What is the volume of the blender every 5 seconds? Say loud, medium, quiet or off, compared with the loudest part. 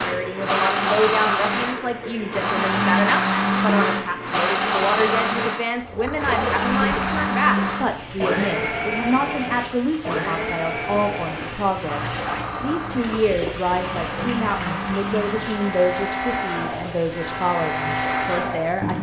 loud, loud, medium, medium.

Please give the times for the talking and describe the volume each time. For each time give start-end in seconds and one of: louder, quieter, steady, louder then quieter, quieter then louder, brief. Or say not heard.
0.0-18.9 steady.